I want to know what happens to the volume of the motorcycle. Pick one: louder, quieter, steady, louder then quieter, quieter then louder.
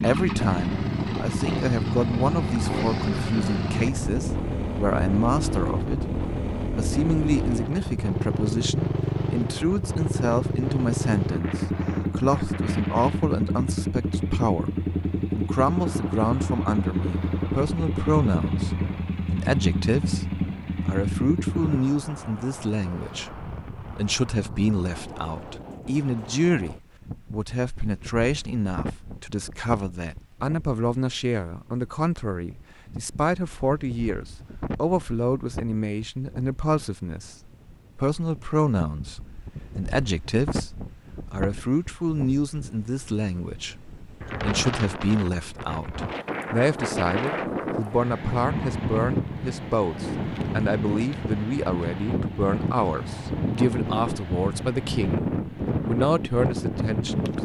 steady.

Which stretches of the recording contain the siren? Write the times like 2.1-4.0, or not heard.
not heard.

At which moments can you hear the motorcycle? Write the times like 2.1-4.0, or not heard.
0.0-21.8.